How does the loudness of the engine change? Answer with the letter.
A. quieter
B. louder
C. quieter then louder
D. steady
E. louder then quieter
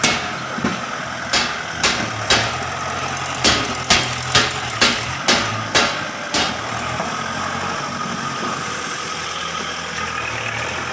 D.